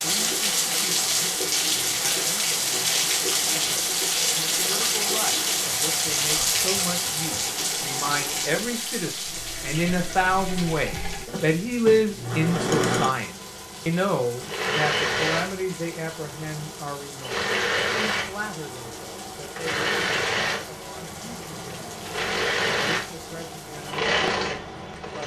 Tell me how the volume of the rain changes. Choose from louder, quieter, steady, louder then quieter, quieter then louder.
quieter.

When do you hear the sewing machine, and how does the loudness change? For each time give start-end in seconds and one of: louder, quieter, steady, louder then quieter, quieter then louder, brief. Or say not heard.
0.1-25.2 louder.